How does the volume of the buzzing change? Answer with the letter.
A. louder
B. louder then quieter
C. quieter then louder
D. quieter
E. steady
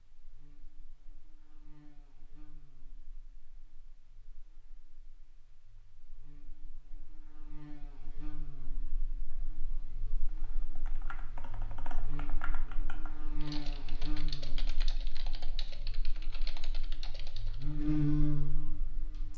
A.